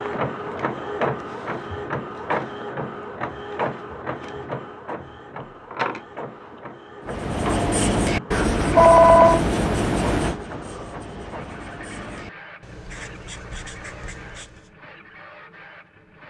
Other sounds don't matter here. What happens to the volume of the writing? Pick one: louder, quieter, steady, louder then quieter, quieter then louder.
quieter.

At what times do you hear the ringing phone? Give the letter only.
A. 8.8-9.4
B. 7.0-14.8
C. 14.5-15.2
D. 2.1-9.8
A.